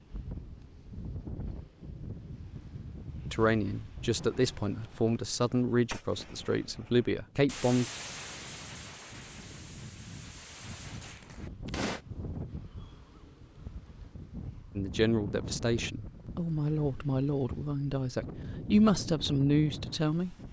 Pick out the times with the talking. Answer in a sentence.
The talking can be heard from 3.3 to 7.8 s and from 14.8 to 20.4 s.